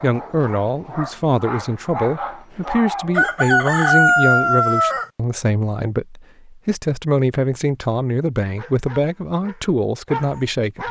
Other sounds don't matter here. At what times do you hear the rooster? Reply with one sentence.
You can hear the rooster from 3.1 to 5.0 s.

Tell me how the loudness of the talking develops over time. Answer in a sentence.
The loudness of the talking stays about the same.